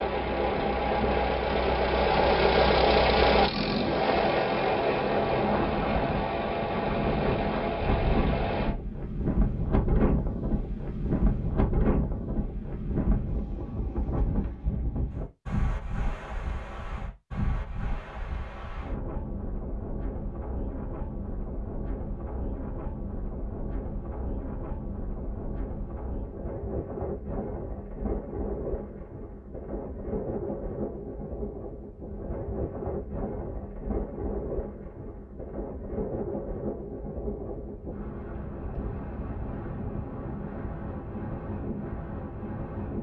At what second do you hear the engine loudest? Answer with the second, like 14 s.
3 s.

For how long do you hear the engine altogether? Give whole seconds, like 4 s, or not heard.
9 s.